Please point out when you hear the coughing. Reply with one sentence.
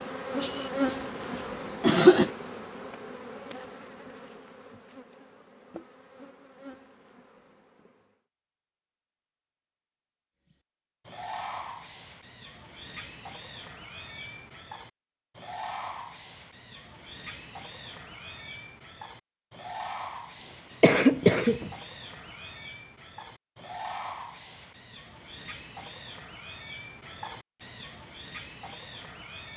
You can hear the coughing from 0.4 to 2.3 s and from 20.4 to 21.7 s.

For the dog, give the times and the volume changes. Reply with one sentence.
You can't hear the dog here.